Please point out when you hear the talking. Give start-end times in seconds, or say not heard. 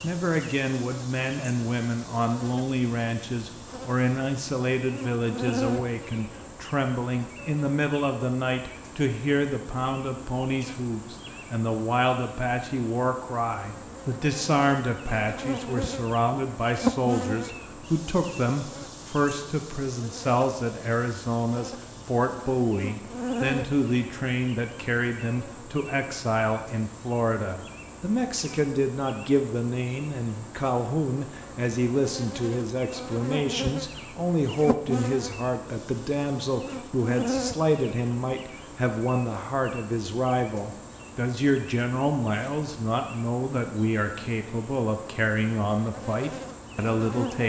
0.0-47.4.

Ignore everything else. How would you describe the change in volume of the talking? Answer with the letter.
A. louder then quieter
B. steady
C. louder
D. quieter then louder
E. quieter
B.